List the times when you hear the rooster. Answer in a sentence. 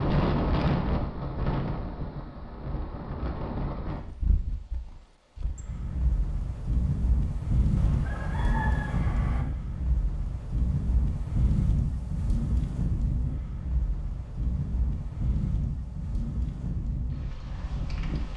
You can hear the rooster from 7.8 to 9.4 s.